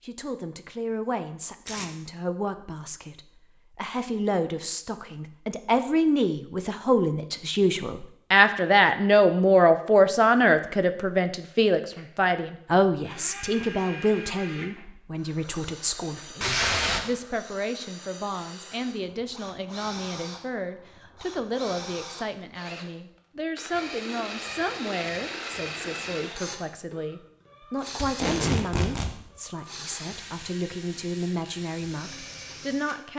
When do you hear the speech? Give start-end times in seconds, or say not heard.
0.0-33.1.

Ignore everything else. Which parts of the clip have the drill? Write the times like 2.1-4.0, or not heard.
11.9-33.0.